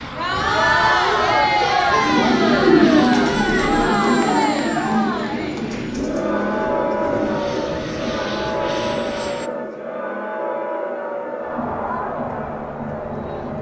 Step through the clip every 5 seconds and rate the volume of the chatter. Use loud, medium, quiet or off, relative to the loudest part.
loud, medium, medium.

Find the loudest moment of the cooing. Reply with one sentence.
The volume of the cooing peaks at 3 seconds.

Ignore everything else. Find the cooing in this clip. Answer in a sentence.
You can hear the cooing from 1.9 to 10.2 s.